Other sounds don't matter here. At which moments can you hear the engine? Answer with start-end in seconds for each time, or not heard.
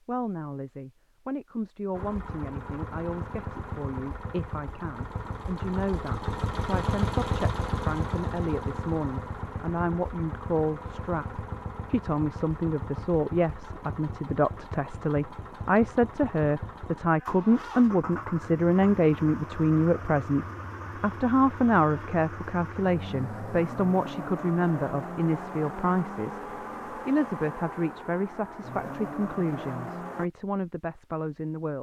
1.9-30.3.